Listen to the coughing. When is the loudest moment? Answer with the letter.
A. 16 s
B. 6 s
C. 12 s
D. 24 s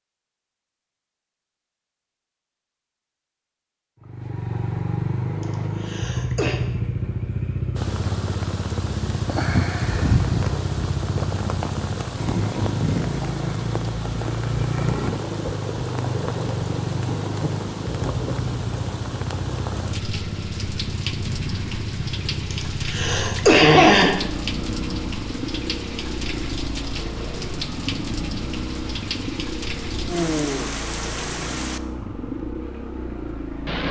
D.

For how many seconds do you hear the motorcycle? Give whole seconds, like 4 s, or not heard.
30 s.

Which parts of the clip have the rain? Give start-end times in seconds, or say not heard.
7.8-33.8.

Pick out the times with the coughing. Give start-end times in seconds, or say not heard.
5.4-6.6, 22.5-24.1.